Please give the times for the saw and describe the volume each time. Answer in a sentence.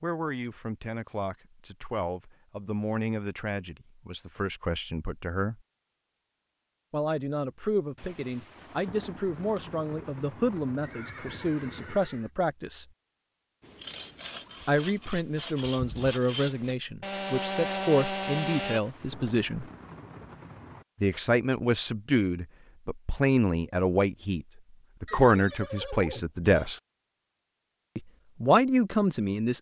The saw can be heard from 13.6 to 18.8 s, getting louder.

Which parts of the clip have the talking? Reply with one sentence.
You can hear the talking from 0.0 to 5.6 s, from 6.9 to 12.8 s, from 14.7 to 19.6 s, from 21.0 to 26.8 s and from 27.9 to 29.5 s.